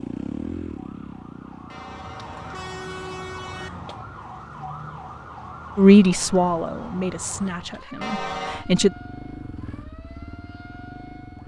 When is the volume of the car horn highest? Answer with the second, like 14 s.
8 s.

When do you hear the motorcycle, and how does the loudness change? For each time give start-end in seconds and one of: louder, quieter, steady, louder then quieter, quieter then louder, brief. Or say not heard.
0.0-4.2 quieter
8.5-11.4 brief.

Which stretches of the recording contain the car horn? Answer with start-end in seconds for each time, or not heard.
1.7-3.7, 8.0-8.7.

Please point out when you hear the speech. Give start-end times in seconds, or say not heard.
5.8-8.9.